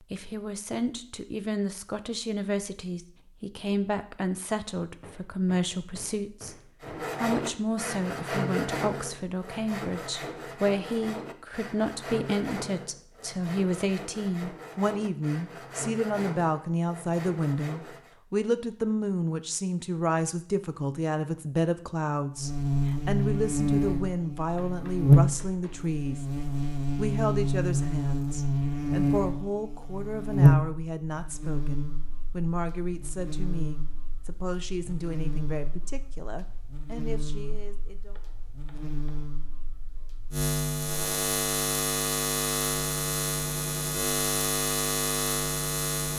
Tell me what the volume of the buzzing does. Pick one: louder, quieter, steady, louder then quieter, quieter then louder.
quieter then louder.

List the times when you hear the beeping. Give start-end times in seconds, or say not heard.
not heard.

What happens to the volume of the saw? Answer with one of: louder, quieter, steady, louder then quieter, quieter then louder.
quieter.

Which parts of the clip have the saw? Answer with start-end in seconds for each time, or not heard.
6.8-18.1.